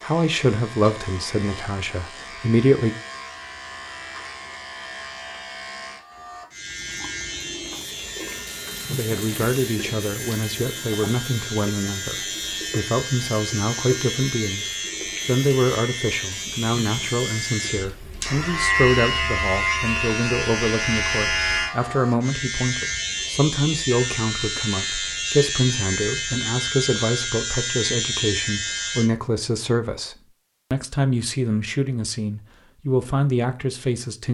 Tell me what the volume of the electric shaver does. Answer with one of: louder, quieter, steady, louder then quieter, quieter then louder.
louder.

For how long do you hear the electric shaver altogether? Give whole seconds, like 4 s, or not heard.
29 s.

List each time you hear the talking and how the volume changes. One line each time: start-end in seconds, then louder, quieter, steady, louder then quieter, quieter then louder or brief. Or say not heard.
0.0-3.0 brief
8.9-34.2 steady.